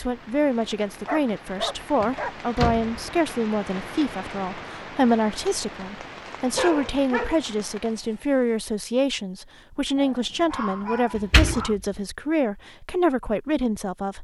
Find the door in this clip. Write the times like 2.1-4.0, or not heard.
2.0-3.0, 11.2-11.7.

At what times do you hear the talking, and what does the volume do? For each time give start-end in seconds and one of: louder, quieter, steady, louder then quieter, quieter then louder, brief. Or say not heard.
0.0-14.1 steady.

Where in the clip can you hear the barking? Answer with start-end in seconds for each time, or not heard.
1.1-2.4, 6.5-7.4, 9.9-11.8.